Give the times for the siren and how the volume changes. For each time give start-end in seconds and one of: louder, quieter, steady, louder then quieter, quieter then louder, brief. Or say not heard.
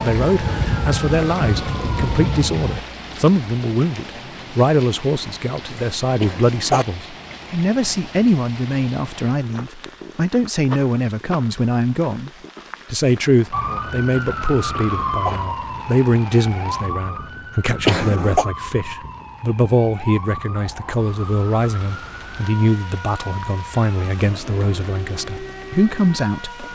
0.0-2.9 brief
13.5-26.7 quieter.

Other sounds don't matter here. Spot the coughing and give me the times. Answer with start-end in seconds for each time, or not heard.
6.2-6.8, 14.8-15.4, 17.9-18.4.